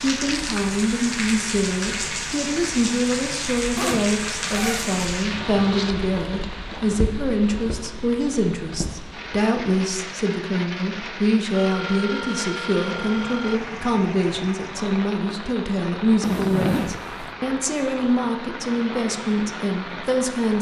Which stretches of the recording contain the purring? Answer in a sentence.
You can't hear the purring here.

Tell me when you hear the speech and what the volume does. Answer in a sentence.
The speech can be heard from 0.0 to 20.5 s, at a steady volume.